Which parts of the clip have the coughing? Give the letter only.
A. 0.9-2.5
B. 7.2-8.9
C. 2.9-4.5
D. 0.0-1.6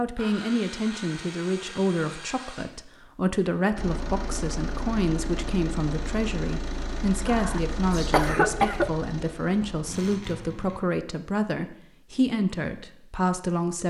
B.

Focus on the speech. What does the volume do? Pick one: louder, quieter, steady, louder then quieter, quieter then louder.
steady.